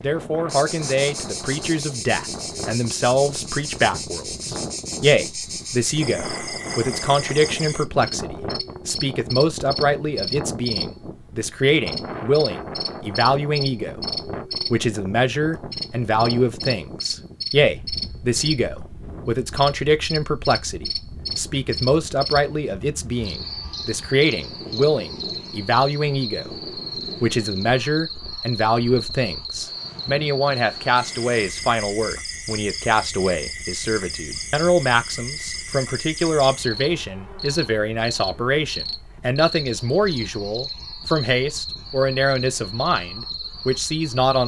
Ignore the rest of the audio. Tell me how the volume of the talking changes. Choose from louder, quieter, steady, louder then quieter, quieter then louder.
steady.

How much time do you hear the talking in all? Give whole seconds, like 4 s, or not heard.
43 s.